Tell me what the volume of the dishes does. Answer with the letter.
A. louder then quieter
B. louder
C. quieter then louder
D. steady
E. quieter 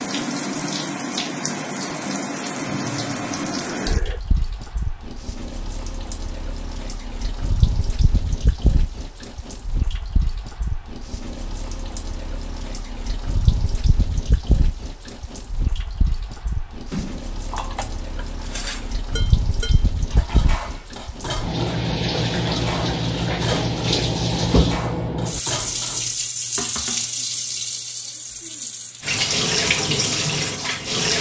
D.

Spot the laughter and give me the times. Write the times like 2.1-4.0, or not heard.
2.6-4.2.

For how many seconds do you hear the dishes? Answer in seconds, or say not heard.
10 s.